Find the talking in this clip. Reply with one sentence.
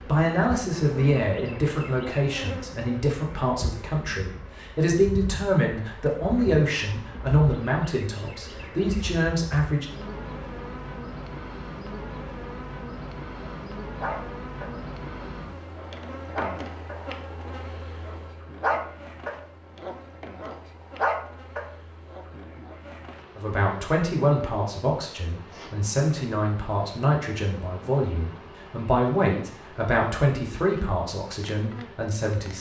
The talking can be heard from 0.1 to 9.8 s and from 23.4 to 32.5 s.